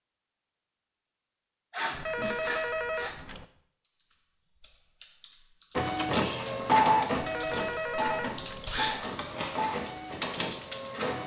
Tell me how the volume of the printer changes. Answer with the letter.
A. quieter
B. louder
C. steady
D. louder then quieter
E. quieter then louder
A.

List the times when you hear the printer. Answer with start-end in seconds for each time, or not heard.
5.8-11.2.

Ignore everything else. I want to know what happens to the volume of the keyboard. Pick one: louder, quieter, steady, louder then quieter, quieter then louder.
louder.